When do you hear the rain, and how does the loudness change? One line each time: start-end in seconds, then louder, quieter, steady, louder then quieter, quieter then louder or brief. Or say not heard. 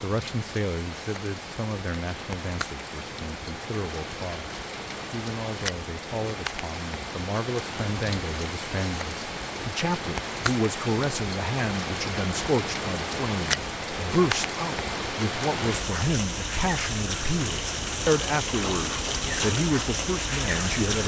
0.0-21.0 louder.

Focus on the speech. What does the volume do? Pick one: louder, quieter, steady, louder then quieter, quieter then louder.
louder.